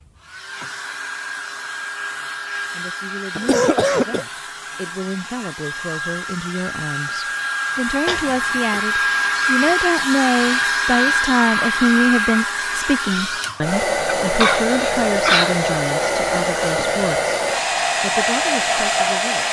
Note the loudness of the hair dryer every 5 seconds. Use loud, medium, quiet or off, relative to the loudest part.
medium, loud, loud, loud.